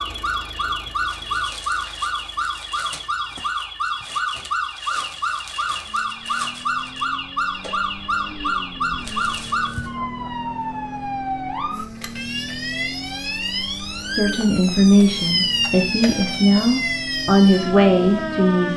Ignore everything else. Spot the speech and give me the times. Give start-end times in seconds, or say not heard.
14.2-18.7.